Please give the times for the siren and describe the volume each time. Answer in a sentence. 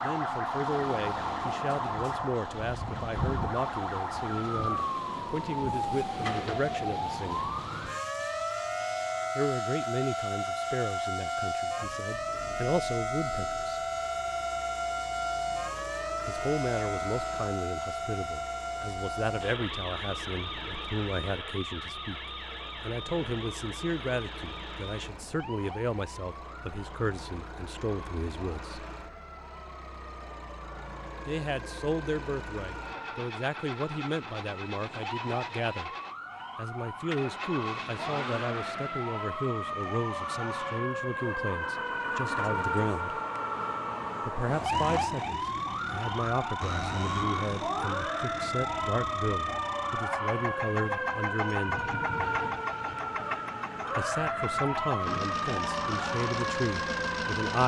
You can hear the siren from 0.0 to 57.6 s, getting quieter then louder.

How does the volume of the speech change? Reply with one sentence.
The volume of the speech stays about the same.